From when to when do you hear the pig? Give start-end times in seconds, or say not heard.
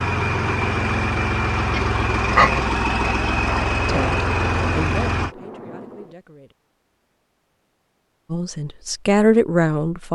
1.7-3.1.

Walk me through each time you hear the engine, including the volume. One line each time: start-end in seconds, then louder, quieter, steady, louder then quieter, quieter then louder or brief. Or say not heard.
0.0-5.3 steady.